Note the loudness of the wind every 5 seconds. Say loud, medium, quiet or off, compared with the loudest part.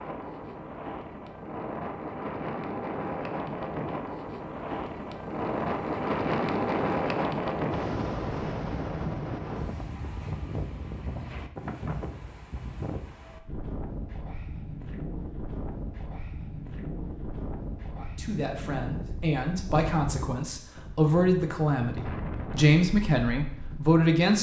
medium, loud, medium, medium, medium.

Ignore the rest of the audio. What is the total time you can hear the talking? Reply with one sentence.
You can hear the talking for 6 seconds altogether.